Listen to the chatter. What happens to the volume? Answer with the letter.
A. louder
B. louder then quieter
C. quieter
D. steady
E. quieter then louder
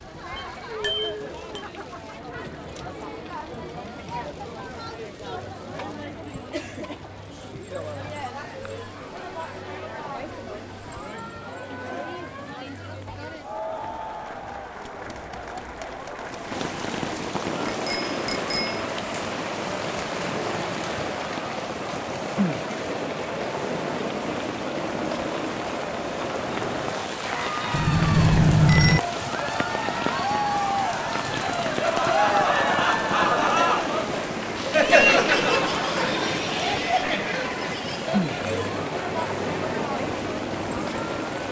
A.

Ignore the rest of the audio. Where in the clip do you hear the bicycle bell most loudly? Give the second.
29 s.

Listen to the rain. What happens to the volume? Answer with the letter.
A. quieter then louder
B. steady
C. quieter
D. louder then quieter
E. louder
E.